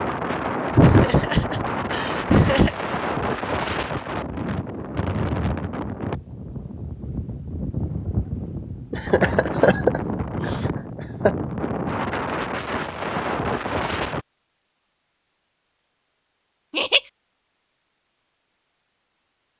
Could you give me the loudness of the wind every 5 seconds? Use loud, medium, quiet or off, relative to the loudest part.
loud, loud, loud, off.